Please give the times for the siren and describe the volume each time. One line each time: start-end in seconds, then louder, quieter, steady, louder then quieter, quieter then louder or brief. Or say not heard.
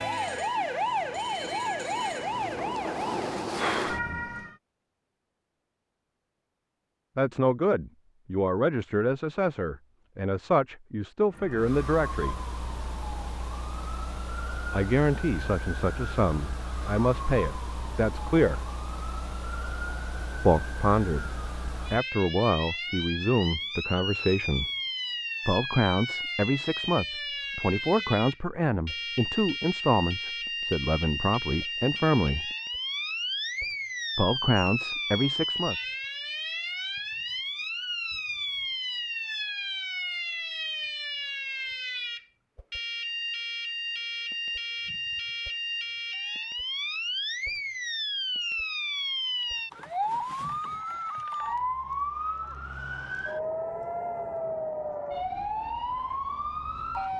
0.0-4.5 steady
11.3-57.1 louder.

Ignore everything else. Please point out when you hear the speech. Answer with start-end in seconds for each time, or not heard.
7.2-12.3, 14.7-18.7, 20.4-21.3, 21.9-24.7, 25.4-32.5, 34.1-35.8.